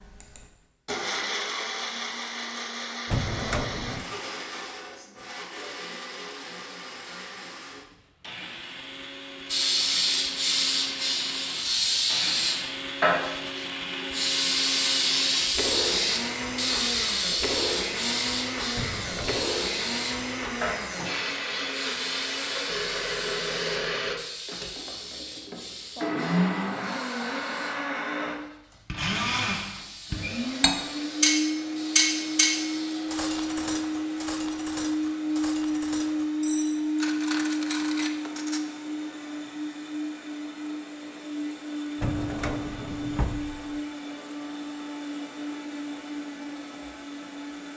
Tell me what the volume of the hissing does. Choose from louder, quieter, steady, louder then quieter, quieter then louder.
quieter.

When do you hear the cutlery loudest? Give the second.
32 s.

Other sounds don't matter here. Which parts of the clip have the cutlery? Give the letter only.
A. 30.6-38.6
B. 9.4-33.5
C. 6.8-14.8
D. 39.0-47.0
A.